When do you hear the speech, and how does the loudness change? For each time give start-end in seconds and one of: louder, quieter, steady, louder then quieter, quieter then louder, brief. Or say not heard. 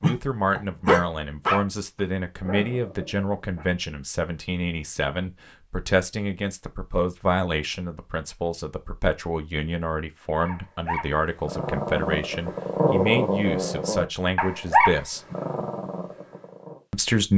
0.0-15.2 steady
16.9-17.3 brief.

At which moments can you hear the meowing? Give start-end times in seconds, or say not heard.
not heard.